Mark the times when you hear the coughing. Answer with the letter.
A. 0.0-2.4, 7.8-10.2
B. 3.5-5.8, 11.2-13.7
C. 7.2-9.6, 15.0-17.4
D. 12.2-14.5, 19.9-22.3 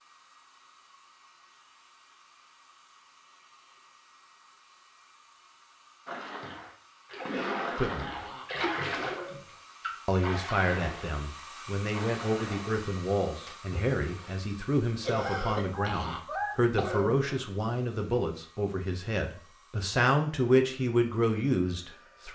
C.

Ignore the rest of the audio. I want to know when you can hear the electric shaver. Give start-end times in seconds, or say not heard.
not heard.